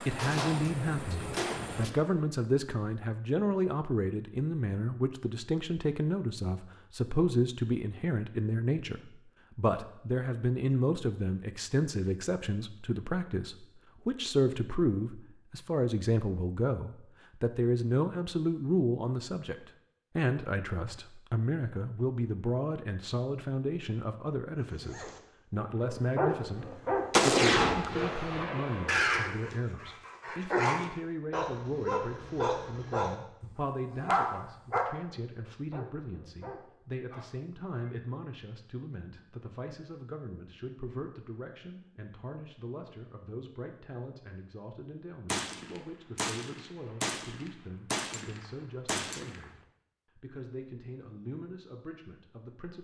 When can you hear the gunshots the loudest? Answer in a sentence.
The loudest moment of the gunshots is at 27 seconds.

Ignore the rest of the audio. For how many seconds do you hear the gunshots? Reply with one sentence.
The gunshots can be heard for 9 seconds in total.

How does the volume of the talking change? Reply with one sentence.
The loudness of the talking goes down.